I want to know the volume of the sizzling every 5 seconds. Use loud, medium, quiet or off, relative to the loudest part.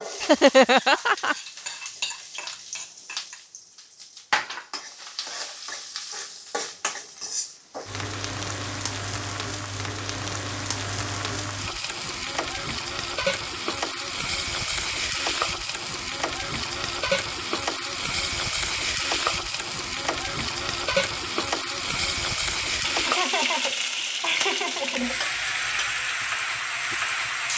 medium, medium, loud, loud, loud, loud.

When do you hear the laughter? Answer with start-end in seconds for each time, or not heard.
0.2-1.4, 22.8-25.2.